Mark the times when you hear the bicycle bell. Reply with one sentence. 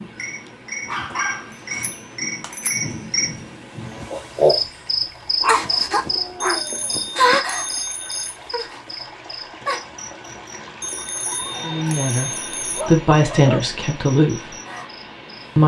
The bicycle bell can be heard from 1.5 to 2.9 s, from 6.4 to 8.4 s and from 10.8 to 12.8 s.